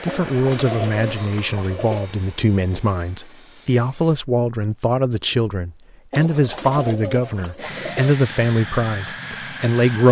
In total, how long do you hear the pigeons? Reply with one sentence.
You can hear the pigeons for 4 seconds altogether.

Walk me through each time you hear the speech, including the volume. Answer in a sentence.
The speech can be heard from 0.0 to 10.0 s, at a steady volume.